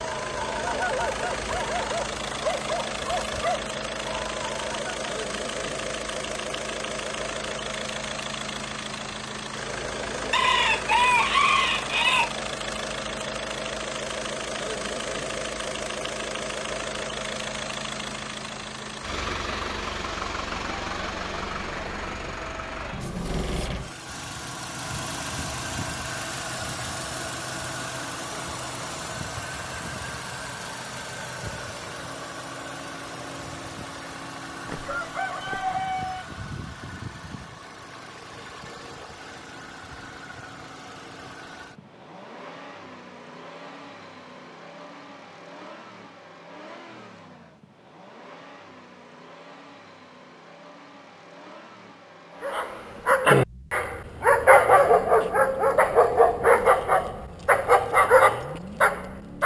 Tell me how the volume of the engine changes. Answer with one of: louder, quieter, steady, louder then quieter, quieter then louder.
quieter.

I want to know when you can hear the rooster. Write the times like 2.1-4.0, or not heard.
10.3-12.3, 34.6-36.2.